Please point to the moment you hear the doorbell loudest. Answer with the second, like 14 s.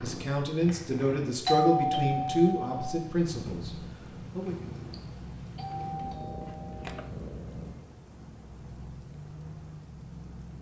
2 s.